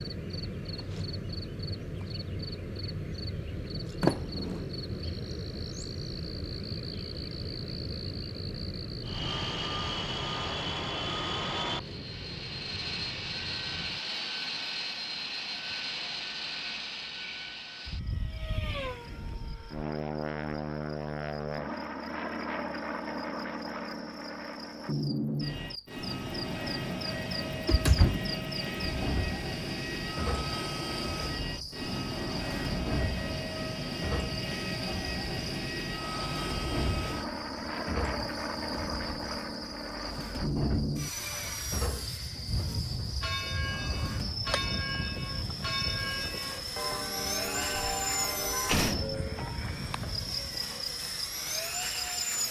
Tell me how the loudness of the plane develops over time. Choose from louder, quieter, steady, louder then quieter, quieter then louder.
steady.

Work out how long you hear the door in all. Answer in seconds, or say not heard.
3 s.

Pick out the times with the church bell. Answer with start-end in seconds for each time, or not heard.
42.6-49.7.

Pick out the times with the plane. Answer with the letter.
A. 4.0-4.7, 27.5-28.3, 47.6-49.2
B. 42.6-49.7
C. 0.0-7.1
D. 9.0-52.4
D.